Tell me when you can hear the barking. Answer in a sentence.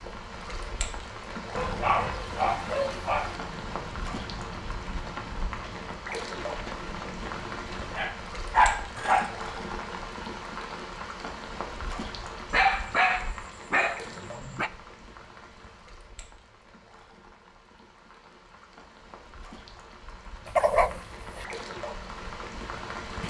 You can hear the barking from 1.6 to 3.4 s, from 8.0 to 9.3 s, from 12.5 to 14.7 s and from 20.4 to 21.4 s.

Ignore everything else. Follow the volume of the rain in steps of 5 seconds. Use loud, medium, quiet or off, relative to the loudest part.
loud, loud, loud, quiet, loud.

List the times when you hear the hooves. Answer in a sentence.
The hooves can be heard from 3.0 to 8.1 s.